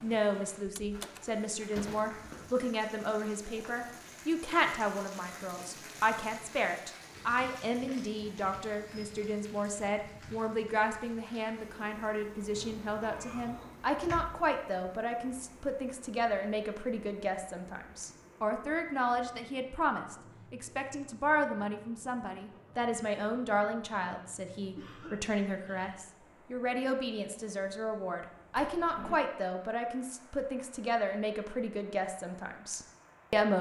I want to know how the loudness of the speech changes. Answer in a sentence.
The volume of the speech stays about the same.